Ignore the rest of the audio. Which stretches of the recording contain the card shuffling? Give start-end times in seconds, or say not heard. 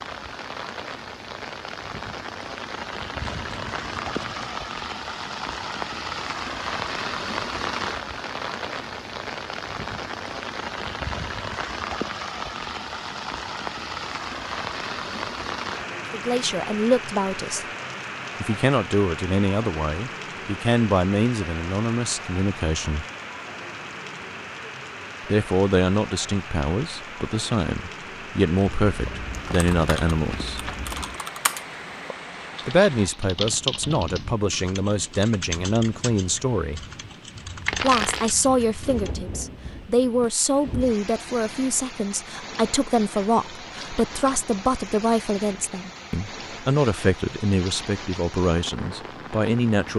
3.2-4.5, 28.6-31.2, 37.6-38.3.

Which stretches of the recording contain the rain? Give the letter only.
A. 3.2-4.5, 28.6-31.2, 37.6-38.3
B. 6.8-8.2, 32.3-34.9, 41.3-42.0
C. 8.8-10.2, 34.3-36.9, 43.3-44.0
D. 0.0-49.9
D.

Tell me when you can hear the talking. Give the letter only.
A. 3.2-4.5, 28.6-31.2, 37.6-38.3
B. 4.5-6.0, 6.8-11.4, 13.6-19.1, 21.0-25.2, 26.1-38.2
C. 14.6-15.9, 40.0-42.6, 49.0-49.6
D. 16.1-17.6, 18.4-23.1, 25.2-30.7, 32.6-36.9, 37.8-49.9
D.